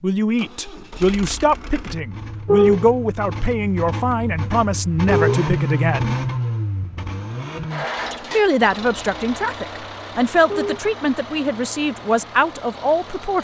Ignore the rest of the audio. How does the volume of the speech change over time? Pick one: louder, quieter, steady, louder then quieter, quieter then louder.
steady.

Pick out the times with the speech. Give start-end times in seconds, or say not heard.
0.0-6.2, 8.1-13.3.